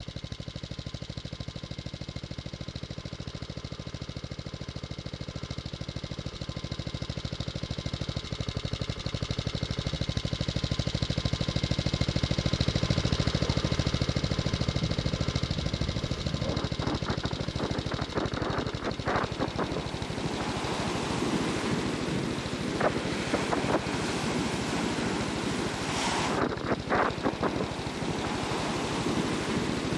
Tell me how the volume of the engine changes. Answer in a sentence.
The volume of the engine goes up, then down.